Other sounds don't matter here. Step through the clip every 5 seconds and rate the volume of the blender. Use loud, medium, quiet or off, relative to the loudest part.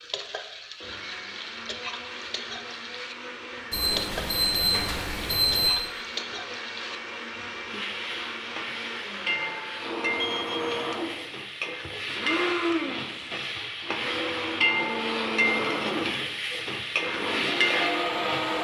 medium, medium, loud, loud.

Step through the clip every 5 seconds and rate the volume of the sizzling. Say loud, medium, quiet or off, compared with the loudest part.
medium, medium, loud, loud.